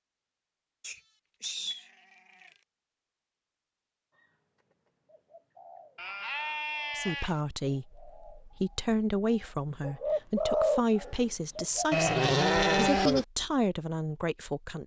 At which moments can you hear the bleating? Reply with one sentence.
You can hear the bleating from 0.8 to 2.5 s, from 6.0 to 7.3 s and from 11.9 to 13.2 s.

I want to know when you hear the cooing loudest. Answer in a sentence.
The loudest moment of the cooing is at 11 seconds.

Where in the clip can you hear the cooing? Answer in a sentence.
You can hear the cooing from 4.2 to 12.1 s.